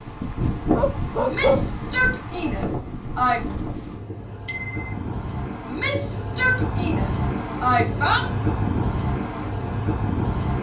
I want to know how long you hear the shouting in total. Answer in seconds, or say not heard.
5 s.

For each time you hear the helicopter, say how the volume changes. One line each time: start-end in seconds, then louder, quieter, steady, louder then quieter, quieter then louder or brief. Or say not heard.
not heard.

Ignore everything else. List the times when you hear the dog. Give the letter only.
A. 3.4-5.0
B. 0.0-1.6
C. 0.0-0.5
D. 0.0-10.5
B.